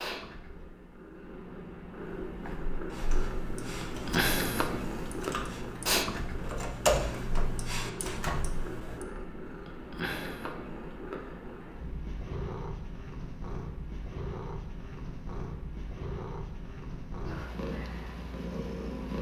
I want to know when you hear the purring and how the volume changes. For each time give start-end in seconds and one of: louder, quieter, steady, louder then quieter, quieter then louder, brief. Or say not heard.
0.0-19.1 louder then quieter.